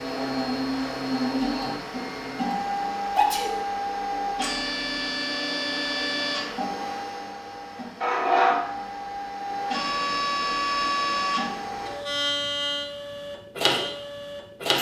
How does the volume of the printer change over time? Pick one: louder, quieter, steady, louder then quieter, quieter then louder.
steady.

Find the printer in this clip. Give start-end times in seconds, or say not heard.
0.0-14.7.